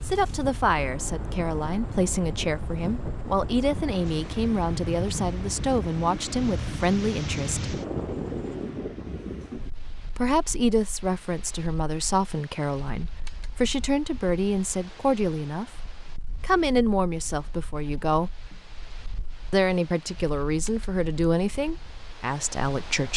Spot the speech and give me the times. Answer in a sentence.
You can hear the speech from 0.0 to 7.7 s, from 10.2 to 18.3 s and from 19.5 to 23.1 s.